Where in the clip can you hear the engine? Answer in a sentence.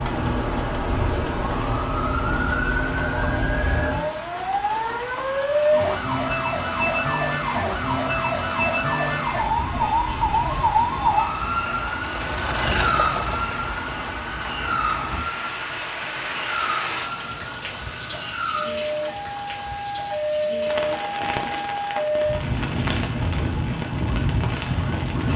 You can hear the engine from 10.5 to 14.2 s.